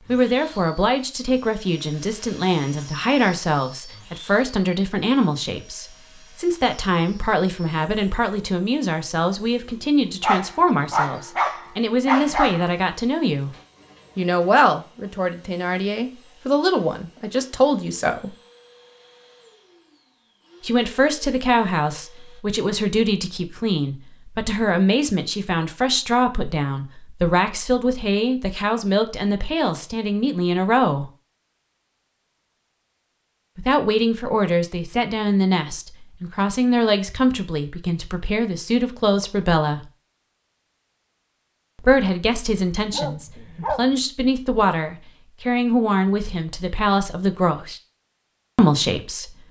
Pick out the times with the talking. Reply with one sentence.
You can hear the talking from 0.1 to 13.5 s, from 14.2 to 18.4 s, from 20.6 to 31.1 s, from 33.5 to 39.9 s, from 41.8 to 47.8 s and from 48.5 to 49.4 s.